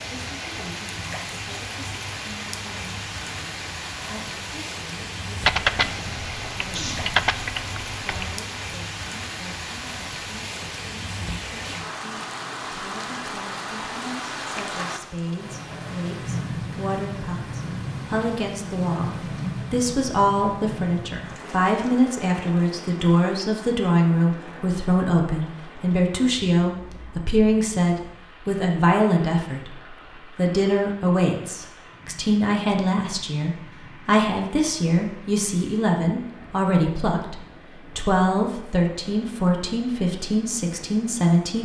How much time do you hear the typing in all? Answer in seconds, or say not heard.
3 s.